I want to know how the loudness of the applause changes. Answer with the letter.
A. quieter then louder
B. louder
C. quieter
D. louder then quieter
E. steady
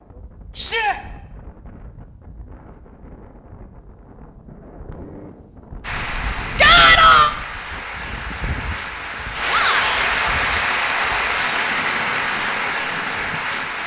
B.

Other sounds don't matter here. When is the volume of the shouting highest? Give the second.
7 s.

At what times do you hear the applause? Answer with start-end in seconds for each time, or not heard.
5.8-13.8.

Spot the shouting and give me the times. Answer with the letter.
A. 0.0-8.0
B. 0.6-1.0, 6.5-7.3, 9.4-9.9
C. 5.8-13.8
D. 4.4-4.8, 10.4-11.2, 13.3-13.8
B.